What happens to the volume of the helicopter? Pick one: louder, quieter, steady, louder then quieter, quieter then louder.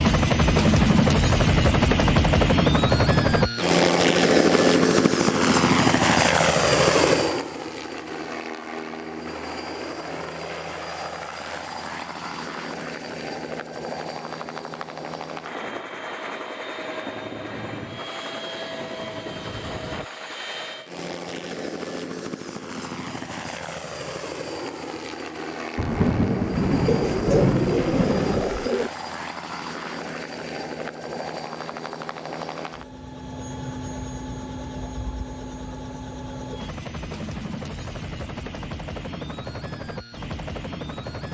quieter.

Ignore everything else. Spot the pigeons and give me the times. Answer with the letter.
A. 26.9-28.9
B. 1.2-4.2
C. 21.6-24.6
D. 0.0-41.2
A.